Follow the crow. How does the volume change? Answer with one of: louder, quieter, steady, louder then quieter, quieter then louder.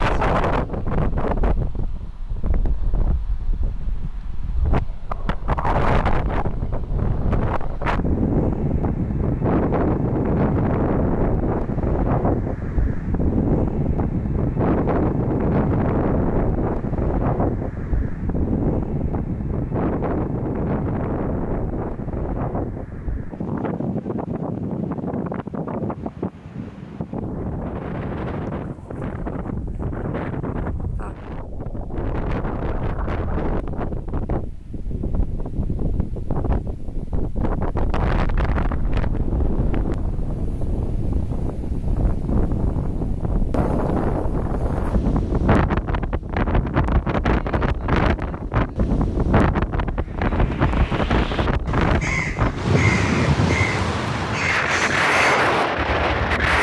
louder.